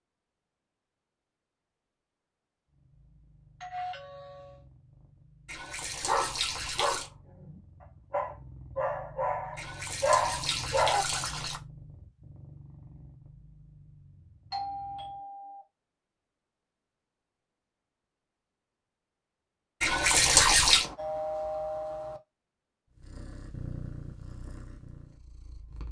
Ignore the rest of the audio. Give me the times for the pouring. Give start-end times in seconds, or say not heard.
5.5-7.1, 9.6-11.6, 19.8-20.9.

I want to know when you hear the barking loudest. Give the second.
10 s.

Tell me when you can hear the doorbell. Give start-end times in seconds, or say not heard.
3.6-4.7, 14.5-15.7, 20.6-22.2.